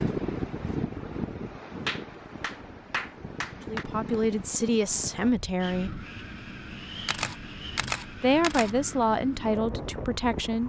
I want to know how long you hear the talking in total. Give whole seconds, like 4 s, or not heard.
5 s.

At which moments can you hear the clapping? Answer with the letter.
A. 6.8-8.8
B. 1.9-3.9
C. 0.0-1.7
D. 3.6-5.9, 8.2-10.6
B.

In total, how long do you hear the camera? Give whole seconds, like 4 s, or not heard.
2 s.